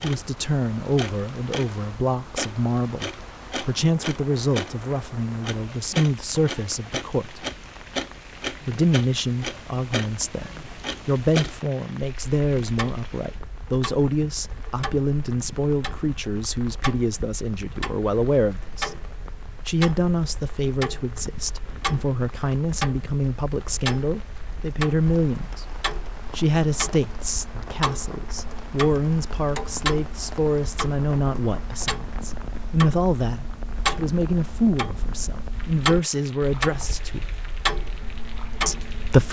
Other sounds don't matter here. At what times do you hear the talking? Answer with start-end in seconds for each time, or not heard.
0.0-7.4, 8.7-18.9, 19.6-25.6, 26.4-37.2, 38.6-39.2.